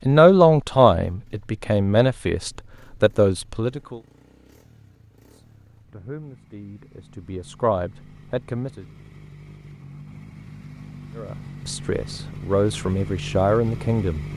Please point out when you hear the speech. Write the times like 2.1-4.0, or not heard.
0.1-4.0, 5.3-8.8, 11.2-14.2.